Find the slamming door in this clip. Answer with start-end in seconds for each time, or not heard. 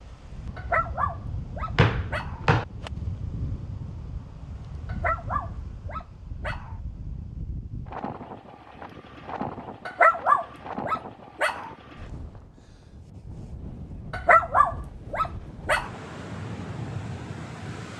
1.8-2.6.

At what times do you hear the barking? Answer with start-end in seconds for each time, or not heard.
0.6-2.4, 4.8-6.8, 9.8-11.7, 14.1-15.9.